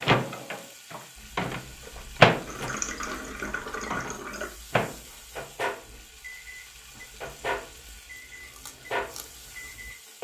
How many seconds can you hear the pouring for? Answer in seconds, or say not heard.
2 s.